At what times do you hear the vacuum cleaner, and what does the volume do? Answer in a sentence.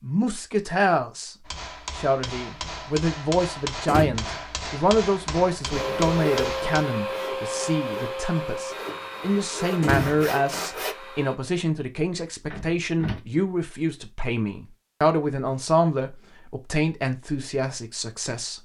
The vacuum cleaner can be heard from 5.7 to 11.3 s, getting quieter.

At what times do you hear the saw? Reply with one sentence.
You can hear the saw from 5.7 to 10.9 s.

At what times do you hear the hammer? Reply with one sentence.
You can hear the hammer from 1.4 to 6.8 s.